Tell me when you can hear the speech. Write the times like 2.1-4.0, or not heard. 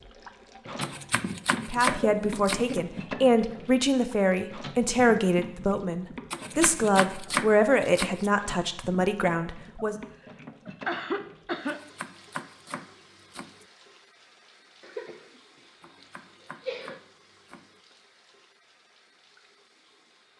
1.6-9.9.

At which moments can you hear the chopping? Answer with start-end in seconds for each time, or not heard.
0.8-2.8, 6.3-8.3, 11.7-13.7, 15.8-17.8.